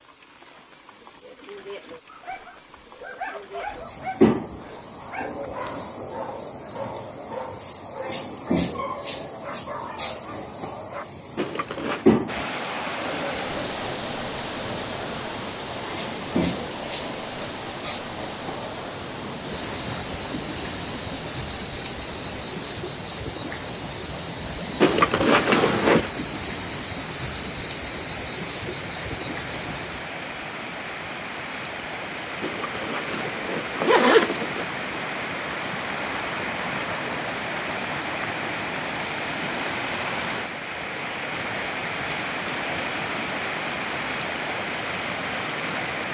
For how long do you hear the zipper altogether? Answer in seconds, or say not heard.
4 s.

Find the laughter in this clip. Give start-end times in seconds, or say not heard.
not heard.